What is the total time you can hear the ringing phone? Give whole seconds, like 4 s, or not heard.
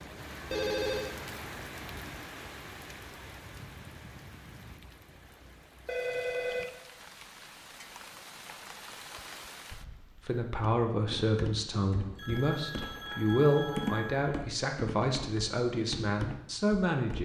4 s.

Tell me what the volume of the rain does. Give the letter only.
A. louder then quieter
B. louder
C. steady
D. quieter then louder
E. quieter
D.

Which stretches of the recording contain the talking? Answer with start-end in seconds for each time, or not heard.
10.2-17.2.